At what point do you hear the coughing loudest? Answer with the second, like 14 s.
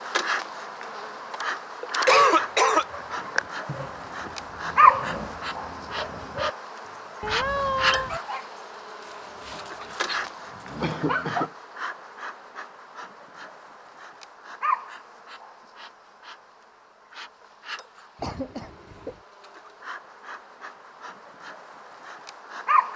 2 s.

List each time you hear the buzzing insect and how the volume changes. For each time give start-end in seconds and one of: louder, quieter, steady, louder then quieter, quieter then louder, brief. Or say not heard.
0.0-22.9 louder then quieter.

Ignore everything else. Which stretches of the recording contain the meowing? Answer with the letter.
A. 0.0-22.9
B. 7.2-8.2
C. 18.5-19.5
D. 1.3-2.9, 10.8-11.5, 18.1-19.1
B.